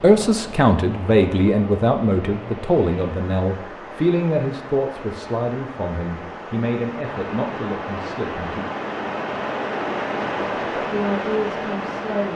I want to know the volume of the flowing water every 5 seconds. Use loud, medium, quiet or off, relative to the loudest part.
medium, loud, loud.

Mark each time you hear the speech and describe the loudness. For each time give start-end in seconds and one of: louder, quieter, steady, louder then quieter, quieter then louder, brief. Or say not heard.
0.0-8.7 quieter
10.8-12.3 brief.